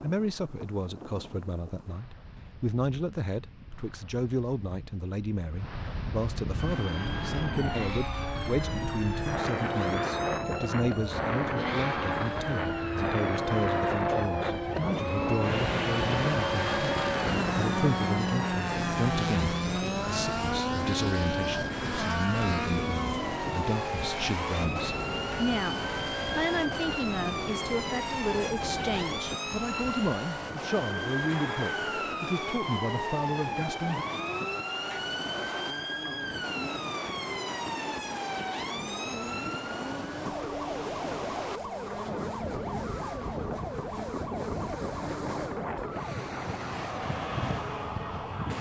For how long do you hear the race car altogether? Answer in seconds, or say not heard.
42 s.